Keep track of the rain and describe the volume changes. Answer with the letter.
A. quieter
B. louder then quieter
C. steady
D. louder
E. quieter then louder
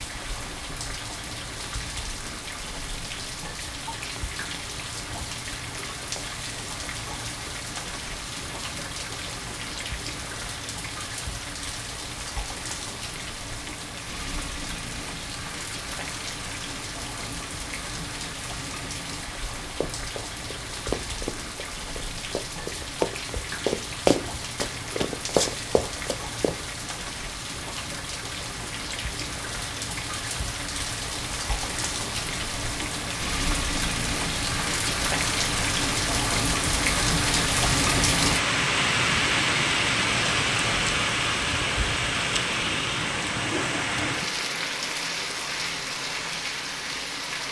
D.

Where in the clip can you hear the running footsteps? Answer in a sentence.
The running footsteps can be heard from 19.8 to 26.6 s.